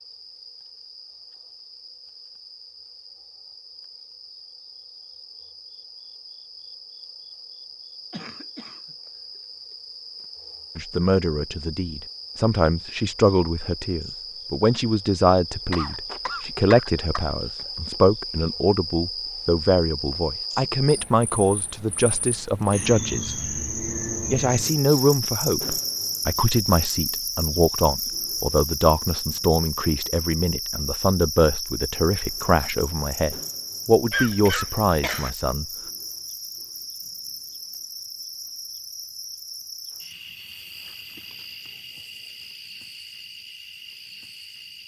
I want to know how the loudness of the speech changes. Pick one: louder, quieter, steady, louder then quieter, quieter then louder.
steady.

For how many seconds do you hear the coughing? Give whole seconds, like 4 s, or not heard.
4 s.